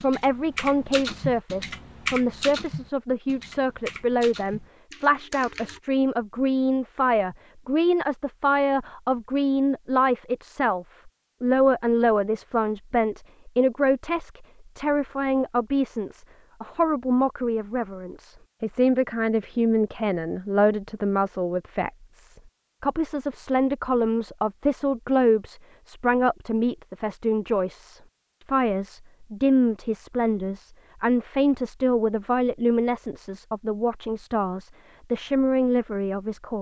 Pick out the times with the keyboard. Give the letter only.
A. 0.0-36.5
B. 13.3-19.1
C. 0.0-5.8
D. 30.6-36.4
C.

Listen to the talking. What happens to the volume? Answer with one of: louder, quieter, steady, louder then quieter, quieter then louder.
steady.